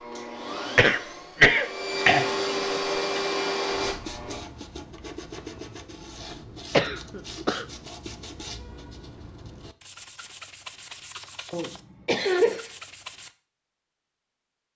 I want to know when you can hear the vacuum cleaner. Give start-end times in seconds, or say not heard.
0.0-4.4.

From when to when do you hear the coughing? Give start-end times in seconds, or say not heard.
0.8-2.3, 6.7-7.7, 11.5-12.8.